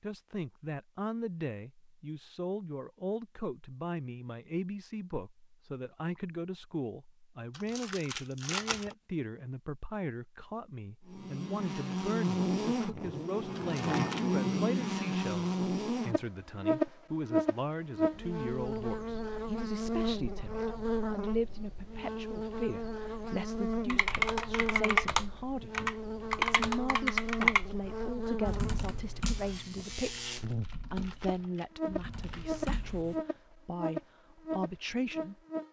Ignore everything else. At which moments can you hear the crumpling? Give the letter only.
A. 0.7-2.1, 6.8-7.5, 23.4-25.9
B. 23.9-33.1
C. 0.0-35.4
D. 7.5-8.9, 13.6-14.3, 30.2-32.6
D.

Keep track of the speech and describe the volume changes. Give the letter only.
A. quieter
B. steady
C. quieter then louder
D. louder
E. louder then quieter
B.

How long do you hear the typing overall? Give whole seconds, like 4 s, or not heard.
9 s.